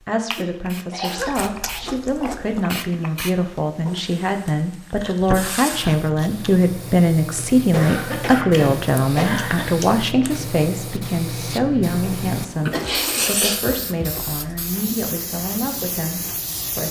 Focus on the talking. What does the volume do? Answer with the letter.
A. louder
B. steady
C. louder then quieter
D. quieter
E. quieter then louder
C.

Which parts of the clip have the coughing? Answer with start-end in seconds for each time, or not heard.
0.3-1.4, 7.7-9.7, 12.6-13.2.